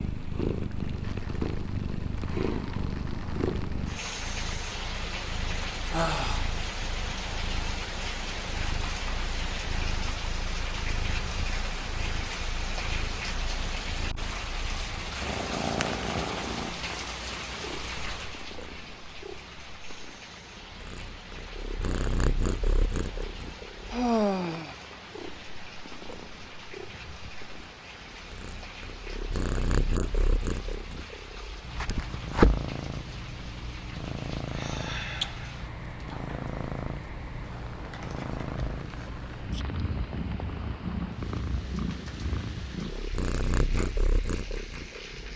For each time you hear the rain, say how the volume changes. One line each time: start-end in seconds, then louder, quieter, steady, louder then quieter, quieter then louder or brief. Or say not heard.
0.0-45.3 quieter.